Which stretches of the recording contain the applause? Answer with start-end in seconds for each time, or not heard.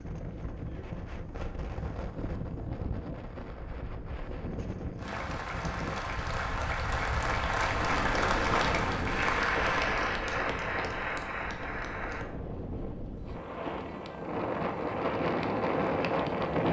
5.0-12.3.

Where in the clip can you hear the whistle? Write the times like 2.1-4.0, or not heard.
not heard.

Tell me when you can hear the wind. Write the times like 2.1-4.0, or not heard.
0.0-16.6.